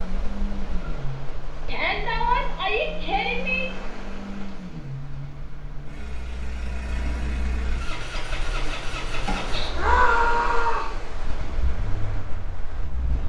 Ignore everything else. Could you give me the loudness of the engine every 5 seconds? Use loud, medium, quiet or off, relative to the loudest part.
loud, loud, medium.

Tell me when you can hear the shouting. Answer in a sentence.
The shouting can be heard from 1.6 to 3.6 s and from 9.8 to 10.9 s.